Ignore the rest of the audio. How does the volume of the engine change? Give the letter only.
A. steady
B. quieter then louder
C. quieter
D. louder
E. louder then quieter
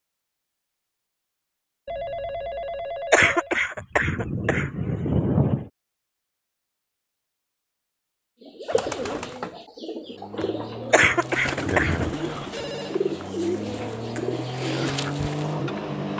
D.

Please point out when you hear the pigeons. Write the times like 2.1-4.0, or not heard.
8.4-15.8.